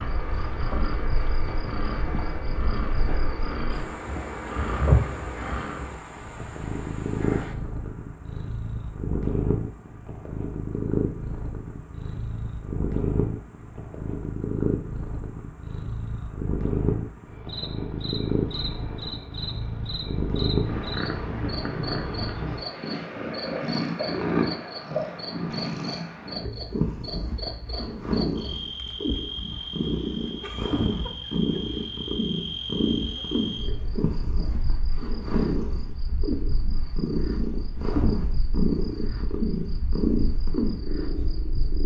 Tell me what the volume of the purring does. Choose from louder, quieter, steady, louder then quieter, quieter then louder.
steady.